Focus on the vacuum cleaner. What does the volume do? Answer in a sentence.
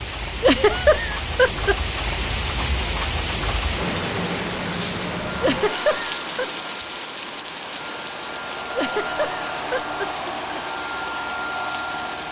The volume of the vacuum cleaner goes up.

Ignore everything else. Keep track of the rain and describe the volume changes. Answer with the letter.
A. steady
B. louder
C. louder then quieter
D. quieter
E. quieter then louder
D.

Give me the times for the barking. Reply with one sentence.
You can't hear the barking here.